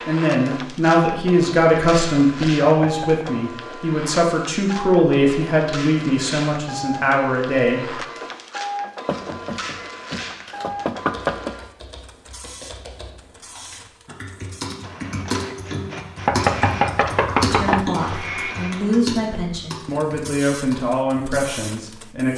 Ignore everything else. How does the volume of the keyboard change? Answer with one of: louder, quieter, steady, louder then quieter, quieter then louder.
louder then quieter.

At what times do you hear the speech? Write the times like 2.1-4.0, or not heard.
0.0-8.0, 17.4-22.3.